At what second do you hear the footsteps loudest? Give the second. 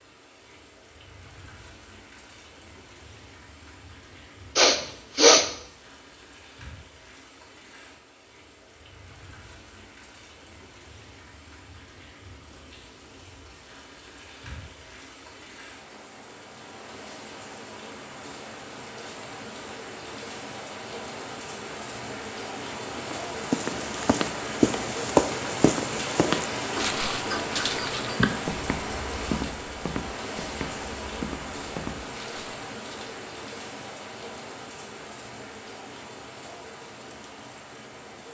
25 s.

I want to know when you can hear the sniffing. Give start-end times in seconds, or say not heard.
4.5-5.5, 26.8-28.2.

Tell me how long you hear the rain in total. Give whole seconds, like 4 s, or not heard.
38 s.